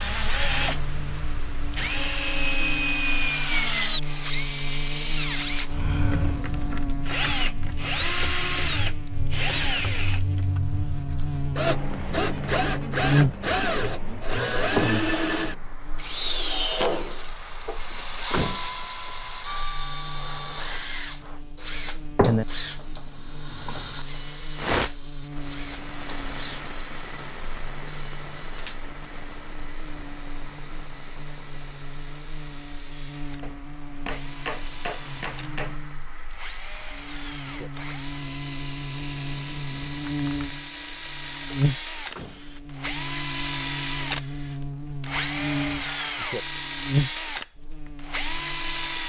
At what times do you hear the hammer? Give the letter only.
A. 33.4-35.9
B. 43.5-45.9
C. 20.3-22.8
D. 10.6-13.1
A.